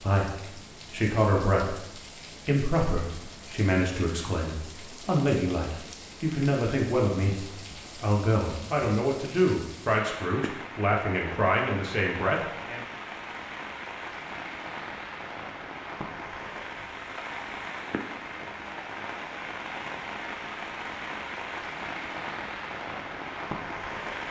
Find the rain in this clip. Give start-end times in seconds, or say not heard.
0.0-24.2.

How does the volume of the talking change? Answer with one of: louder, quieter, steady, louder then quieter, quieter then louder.
steady.